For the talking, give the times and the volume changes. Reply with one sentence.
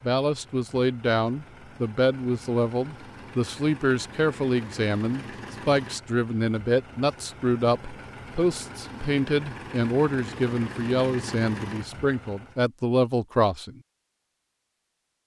The talking can be heard from 0.0 to 13.8 s, at a steady volume.